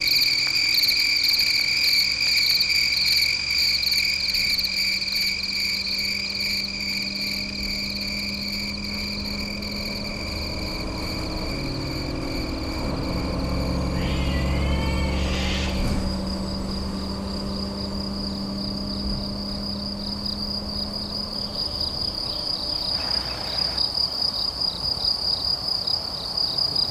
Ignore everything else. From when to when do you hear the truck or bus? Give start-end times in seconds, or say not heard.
0.0-23.8.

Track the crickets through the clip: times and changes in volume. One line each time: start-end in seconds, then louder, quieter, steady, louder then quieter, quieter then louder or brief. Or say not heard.
0.0-26.8 quieter then louder.